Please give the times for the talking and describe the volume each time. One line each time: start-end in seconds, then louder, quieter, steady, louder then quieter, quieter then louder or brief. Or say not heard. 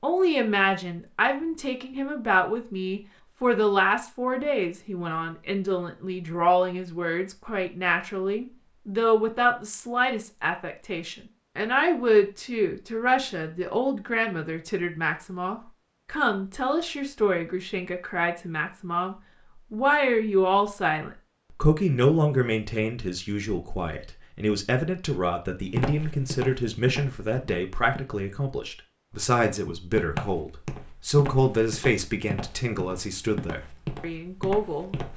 0.0-35.1 steady.